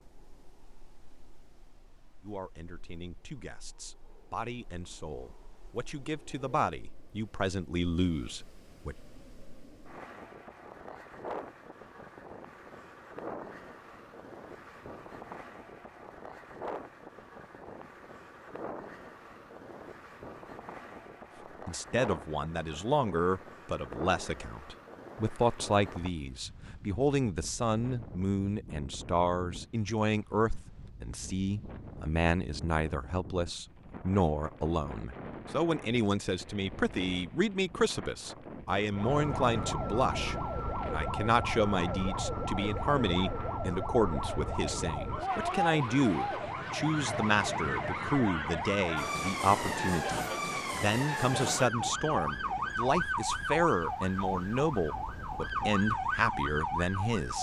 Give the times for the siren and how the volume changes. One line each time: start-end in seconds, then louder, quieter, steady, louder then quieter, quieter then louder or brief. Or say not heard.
38.9-57.3 steady.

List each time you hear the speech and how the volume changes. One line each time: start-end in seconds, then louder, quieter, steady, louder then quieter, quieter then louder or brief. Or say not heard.
2.2-8.9 louder
21.6-57.3 steady.